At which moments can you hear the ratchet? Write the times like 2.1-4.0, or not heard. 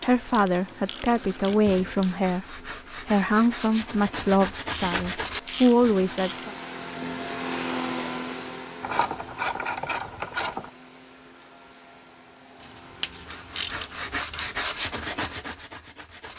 0.0-2.1, 4.7-6.5, 8.8-10.7, 12.6-14.5.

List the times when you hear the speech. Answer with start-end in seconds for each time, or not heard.
0.0-6.5.